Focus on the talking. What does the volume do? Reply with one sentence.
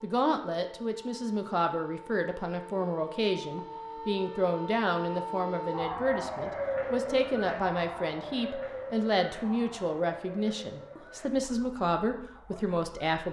The loudness of the talking stays about the same.